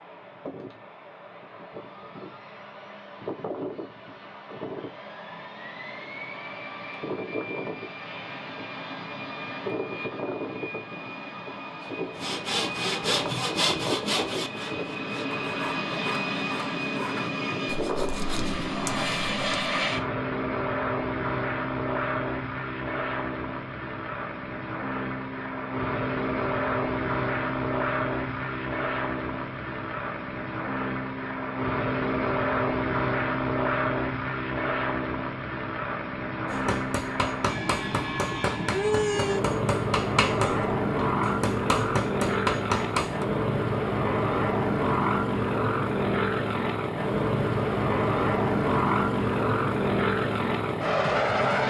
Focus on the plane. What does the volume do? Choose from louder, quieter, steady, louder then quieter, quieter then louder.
louder.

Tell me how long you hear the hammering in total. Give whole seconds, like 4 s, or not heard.
7 s.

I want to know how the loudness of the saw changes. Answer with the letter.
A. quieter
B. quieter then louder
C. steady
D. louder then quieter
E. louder
A.